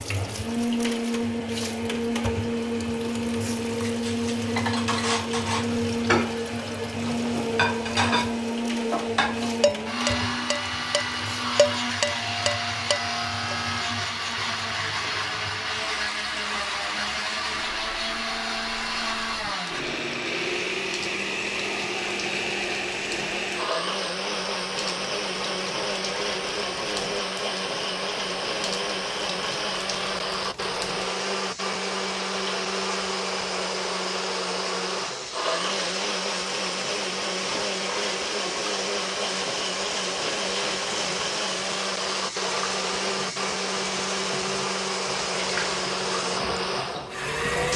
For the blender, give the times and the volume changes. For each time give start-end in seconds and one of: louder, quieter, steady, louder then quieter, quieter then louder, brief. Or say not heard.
0.0-47.7 steady.